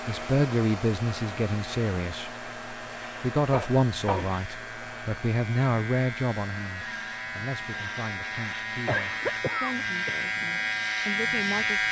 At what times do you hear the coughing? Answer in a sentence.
You can hear the coughing from 3.5 to 4.3 s and from 8.8 to 10.2 s.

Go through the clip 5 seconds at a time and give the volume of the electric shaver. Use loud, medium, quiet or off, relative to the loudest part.
quiet, medium, loud.